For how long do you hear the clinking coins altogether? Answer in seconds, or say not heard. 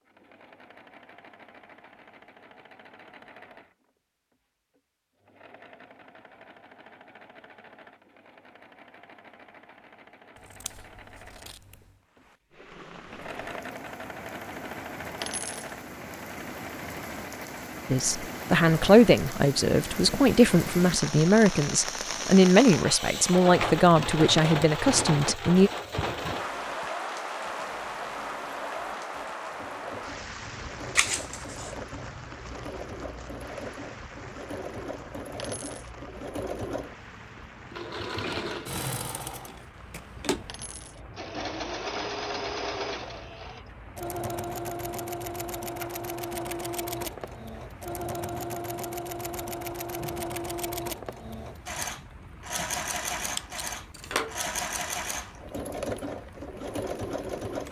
2 s.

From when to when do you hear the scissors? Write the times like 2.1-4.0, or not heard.
10.3-11.9, 30.9-31.8, 53.4-54.4.